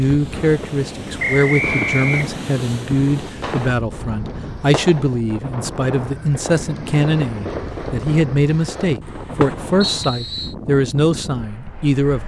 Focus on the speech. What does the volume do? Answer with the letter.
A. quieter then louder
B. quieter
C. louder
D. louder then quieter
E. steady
E.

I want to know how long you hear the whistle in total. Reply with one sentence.
You can hear the whistle for 2 seconds altogether.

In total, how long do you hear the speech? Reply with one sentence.
The speech can be heard for 12 seconds in total.